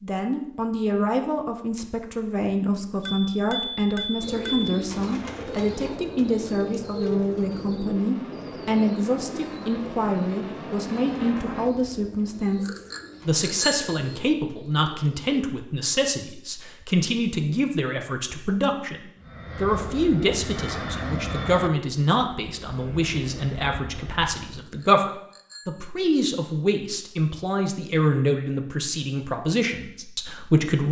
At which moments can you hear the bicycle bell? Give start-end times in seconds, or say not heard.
3.0-4.8, 12.7-14.2, 24.6-25.9.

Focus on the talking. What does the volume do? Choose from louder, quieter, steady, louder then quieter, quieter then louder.
steady.